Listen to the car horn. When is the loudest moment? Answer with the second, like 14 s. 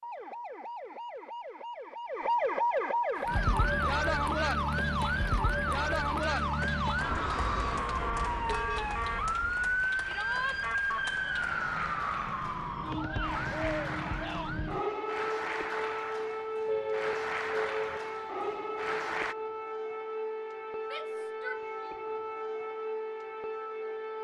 17 s.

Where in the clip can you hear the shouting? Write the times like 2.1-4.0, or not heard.
10.1-10.6, 20.8-21.9.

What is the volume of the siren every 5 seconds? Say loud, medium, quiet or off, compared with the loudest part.
loud, loud, loud, medium, medium.